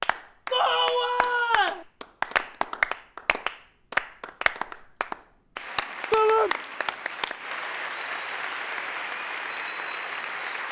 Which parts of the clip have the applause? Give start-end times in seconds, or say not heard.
0.0-10.6.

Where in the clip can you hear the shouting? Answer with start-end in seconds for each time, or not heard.
0.5-1.9, 6.1-6.5.